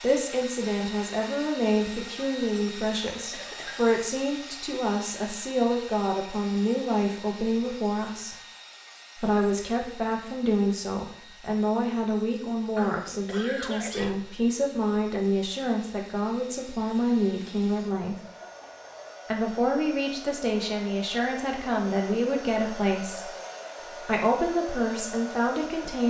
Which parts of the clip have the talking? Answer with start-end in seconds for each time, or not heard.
0.0-8.3, 9.2-18.1, 19.2-23.3, 24.1-26.0.